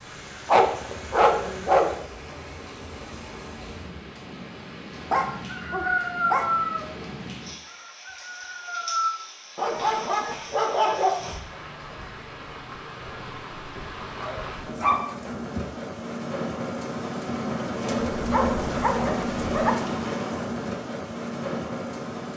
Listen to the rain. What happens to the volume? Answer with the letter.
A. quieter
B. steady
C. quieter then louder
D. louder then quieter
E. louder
E.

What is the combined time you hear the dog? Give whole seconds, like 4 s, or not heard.
8 s.